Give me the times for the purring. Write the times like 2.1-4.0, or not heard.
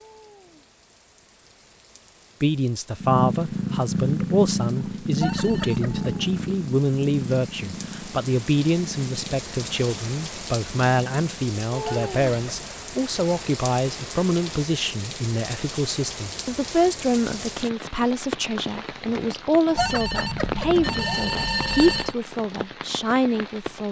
3.0-11.6.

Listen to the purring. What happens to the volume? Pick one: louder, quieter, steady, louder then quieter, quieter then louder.
quieter.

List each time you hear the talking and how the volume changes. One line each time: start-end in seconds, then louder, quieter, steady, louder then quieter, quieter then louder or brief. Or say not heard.
2.4-23.8 steady.